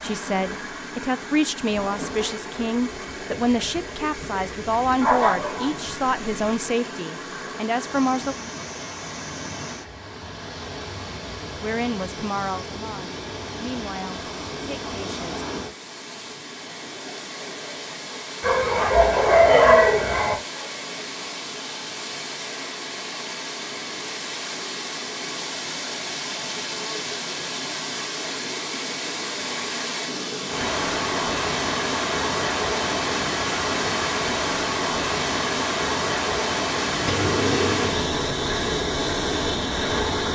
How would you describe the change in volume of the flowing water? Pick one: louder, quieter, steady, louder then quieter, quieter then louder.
louder.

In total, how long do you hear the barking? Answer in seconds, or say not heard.
5 s.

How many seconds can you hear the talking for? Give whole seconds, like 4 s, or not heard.
12 s.